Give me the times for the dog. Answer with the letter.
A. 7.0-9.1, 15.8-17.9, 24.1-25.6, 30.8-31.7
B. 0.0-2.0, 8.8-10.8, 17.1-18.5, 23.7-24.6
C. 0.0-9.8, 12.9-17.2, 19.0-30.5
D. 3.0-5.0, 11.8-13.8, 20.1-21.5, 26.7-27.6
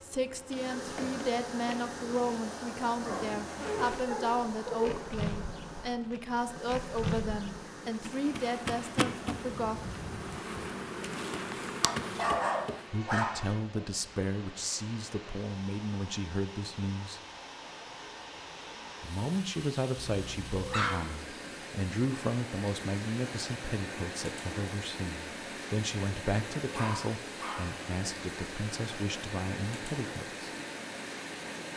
D.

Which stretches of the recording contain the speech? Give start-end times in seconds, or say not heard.
0.0-9.8, 12.9-17.2, 19.0-30.5.